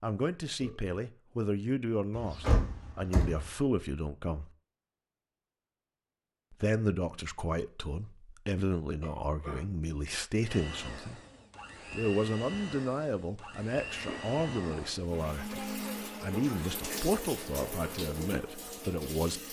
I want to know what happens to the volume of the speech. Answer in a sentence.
The loudness of the speech stays about the same.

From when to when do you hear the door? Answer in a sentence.
The door can be heard from 2.1 to 3.5 s.